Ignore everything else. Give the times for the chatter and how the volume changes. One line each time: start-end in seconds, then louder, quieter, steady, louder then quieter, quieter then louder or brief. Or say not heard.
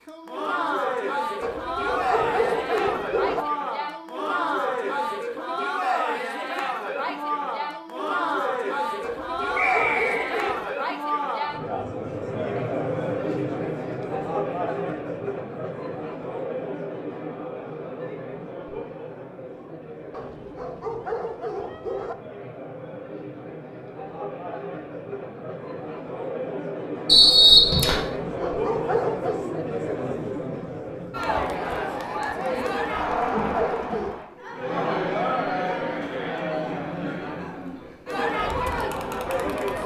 0.1-39.8 quieter then louder.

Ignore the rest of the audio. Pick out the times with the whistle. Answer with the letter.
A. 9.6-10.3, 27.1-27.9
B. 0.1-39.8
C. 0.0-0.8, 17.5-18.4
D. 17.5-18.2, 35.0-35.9
A.